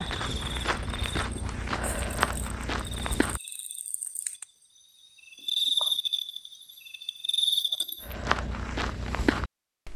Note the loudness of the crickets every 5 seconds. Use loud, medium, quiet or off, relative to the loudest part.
quiet, loud.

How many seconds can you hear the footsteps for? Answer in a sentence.
The footsteps can be heard for 5 seconds in total.